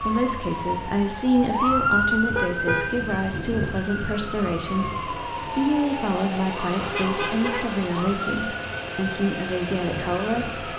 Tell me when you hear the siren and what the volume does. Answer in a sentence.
You can hear the siren from 0.0 to 10.7 s, getting quieter.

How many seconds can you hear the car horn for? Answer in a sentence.
You can hear the car horn for 2 seconds altogether.